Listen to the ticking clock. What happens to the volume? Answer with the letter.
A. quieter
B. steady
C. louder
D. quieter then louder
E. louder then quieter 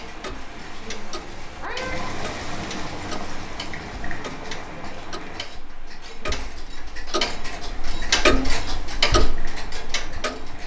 C.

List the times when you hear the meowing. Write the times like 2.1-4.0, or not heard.
1.1-2.1.